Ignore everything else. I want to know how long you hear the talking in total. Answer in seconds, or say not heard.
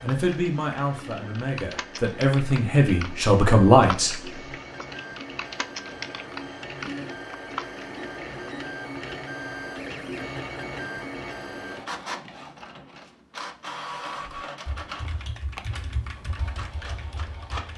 4 s.